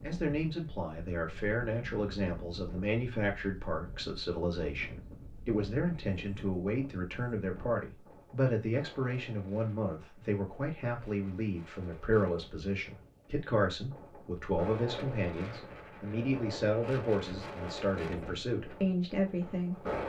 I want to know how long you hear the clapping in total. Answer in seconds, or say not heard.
not heard.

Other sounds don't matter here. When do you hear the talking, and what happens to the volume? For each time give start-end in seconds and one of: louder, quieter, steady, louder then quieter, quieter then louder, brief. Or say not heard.
0.0-19.9 steady.